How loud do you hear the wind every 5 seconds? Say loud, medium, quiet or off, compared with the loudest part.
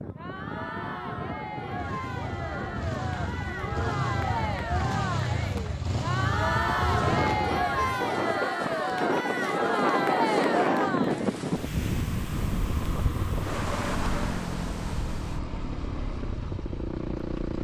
medium, loud, loud, quiet.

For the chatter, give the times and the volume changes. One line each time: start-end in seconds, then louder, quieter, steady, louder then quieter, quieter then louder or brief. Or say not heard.
0.0-11.3 louder.